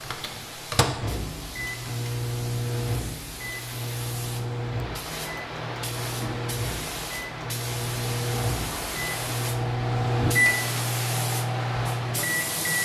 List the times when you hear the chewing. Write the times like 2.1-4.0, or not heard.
not heard.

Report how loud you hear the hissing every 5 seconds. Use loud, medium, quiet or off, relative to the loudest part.
medium, loud, loud.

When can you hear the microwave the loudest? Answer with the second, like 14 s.
10 s.